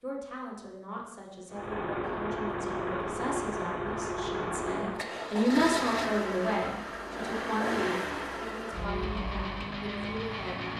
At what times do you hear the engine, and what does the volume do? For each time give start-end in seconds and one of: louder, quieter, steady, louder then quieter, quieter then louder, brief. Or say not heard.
1.5-10.7 steady.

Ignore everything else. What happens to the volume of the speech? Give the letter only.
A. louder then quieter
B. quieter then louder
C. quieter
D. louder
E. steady
A.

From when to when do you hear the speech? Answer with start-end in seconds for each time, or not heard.
0.0-10.7.